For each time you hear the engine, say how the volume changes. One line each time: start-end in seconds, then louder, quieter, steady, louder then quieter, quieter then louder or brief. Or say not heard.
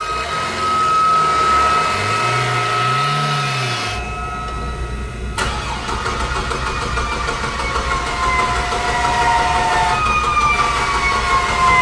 0.0-11.7 steady.